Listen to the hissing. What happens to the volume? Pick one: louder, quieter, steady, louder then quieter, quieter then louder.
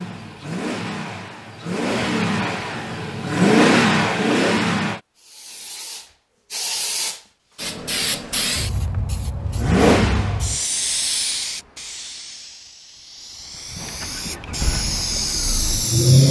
quieter then louder.